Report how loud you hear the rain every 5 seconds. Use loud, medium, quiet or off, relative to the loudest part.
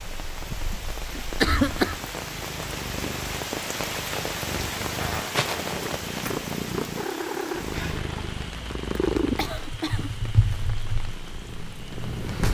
loud, loud, medium.